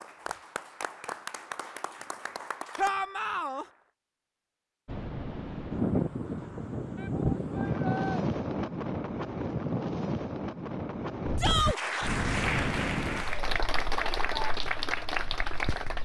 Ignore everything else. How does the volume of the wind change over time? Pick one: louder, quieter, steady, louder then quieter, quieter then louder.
quieter.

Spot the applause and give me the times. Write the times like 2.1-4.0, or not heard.
0.0-4.0, 11.6-16.0.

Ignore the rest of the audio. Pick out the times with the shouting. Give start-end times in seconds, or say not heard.
2.8-3.6, 7.0-8.2, 11.3-11.8.